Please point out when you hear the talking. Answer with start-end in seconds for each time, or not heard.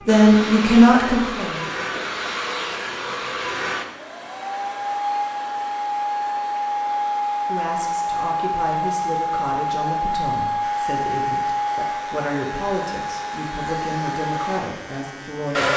0.1-1.9, 7.5-15.7.